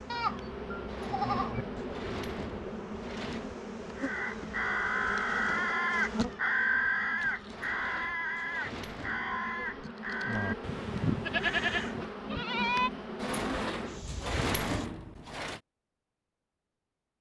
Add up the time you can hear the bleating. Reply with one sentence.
The bleating can be heard for 3 seconds in total.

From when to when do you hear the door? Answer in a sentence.
You can hear the door from 0.8 to 3.5 s, from 7.5 to 9.5 s and from 13.2 to 15.6 s.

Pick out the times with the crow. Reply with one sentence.
You can hear the crow from 4.0 to 12.1 s.